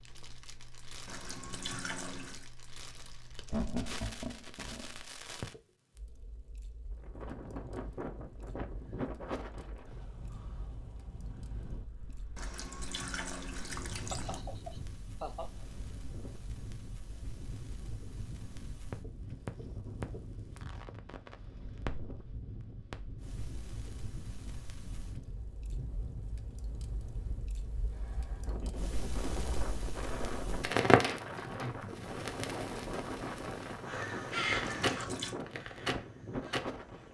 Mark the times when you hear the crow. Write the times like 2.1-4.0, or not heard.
33.9-37.0.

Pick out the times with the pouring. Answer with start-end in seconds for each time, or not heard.
1.1-2.5, 12.3-14.4, 34.6-35.4.